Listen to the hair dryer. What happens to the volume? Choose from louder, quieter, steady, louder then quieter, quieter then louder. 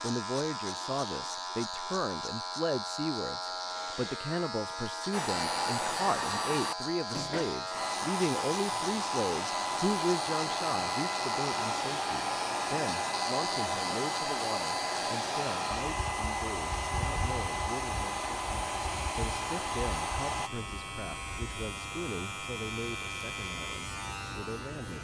steady.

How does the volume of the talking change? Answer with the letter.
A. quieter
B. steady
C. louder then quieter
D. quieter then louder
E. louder
A.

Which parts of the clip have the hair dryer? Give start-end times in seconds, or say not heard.
5.1-20.5.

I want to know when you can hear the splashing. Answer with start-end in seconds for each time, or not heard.
not heard.